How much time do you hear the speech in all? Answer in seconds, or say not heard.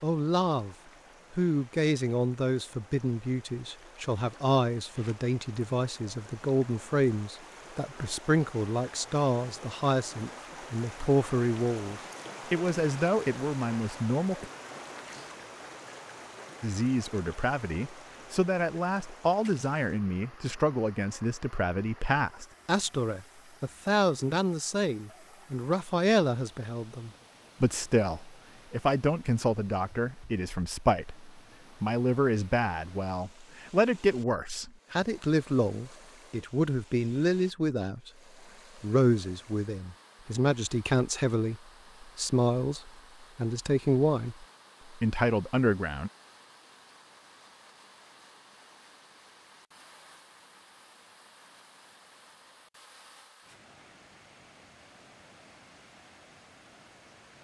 43 s.